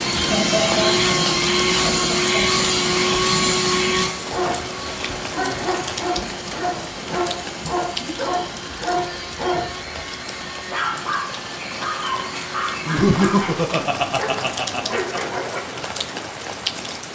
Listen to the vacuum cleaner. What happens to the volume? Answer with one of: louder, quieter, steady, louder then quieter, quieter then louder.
quieter.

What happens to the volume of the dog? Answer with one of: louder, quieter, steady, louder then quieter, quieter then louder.
steady.